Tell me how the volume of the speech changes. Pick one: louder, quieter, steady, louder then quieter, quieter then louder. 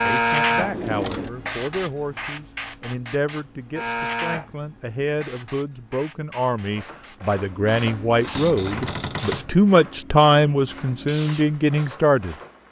louder.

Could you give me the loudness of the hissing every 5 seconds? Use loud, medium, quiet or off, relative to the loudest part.
loud, quiet, quiet.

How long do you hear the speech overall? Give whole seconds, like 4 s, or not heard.
12 s.